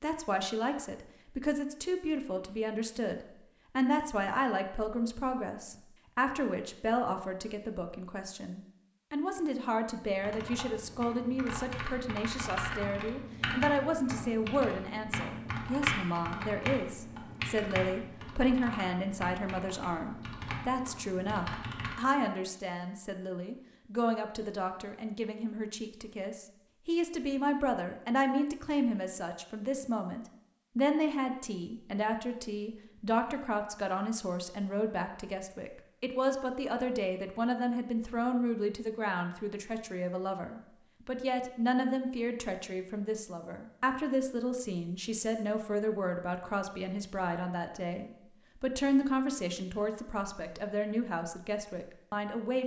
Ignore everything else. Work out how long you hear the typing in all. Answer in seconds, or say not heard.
12 s.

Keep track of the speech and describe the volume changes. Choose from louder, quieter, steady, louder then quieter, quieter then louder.
steady.